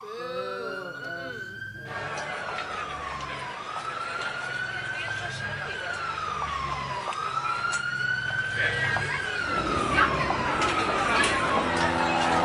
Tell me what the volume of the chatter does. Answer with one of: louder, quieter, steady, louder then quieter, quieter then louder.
louder.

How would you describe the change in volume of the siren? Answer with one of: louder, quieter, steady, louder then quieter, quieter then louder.
louder.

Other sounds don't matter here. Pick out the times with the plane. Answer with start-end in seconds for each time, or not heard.
9.4-12.4.